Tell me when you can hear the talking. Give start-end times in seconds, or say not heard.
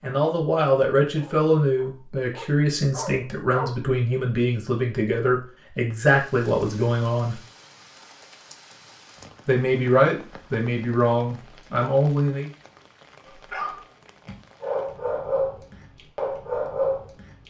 0.0-7.4, 9.4-12.5.